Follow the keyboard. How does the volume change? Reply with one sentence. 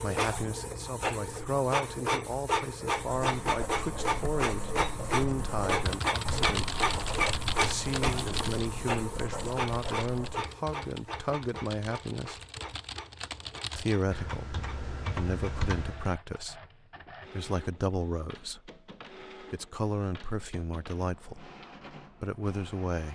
The volume of the keyboard goes down, then up.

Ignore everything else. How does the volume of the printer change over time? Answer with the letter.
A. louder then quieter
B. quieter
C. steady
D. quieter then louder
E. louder
B.